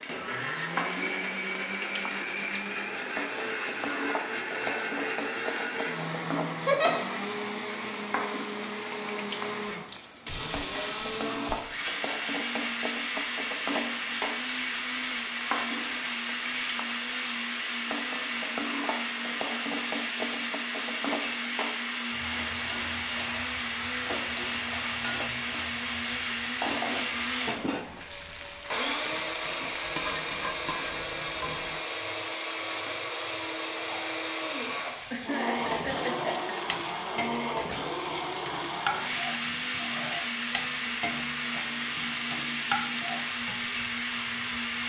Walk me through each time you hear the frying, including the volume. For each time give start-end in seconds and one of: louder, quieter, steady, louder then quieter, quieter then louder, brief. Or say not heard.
0.0-44.8 steady.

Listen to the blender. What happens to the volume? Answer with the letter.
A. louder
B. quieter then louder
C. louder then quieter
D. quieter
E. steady
E.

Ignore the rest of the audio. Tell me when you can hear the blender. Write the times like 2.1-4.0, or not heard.
0.0-44.8.